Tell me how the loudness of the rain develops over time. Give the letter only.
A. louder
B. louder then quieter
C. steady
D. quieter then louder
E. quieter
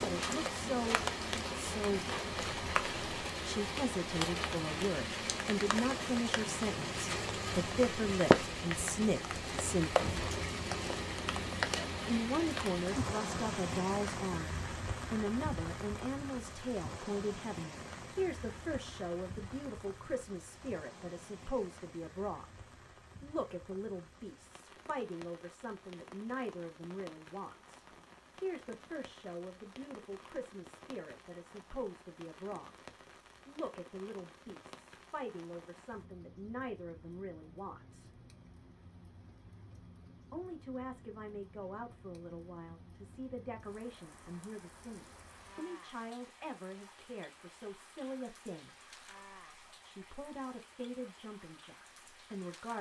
E.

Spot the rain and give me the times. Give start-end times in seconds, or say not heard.
0.0-52.7.